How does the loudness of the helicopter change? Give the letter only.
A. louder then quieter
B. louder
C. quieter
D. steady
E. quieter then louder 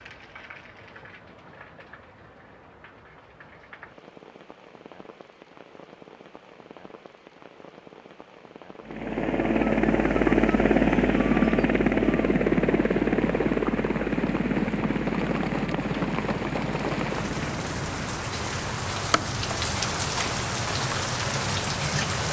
C.